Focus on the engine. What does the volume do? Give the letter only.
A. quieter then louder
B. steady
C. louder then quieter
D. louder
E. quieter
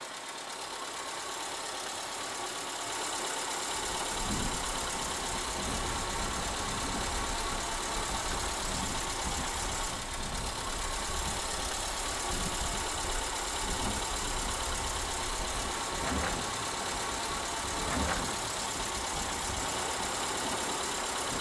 B.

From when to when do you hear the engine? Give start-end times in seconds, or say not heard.
0.0-21.3.